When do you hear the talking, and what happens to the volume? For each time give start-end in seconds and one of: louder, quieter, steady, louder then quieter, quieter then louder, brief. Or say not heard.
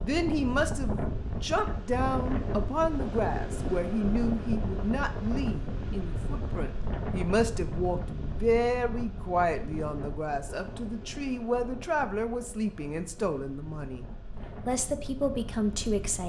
0.0-14.1 steady
14.7-16.2 brief.